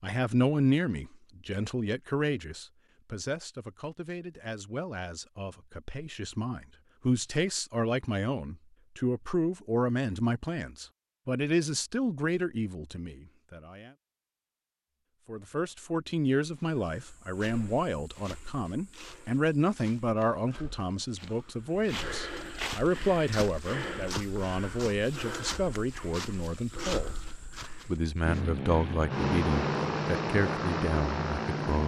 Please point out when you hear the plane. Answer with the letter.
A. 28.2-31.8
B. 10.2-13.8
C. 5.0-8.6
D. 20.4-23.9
A.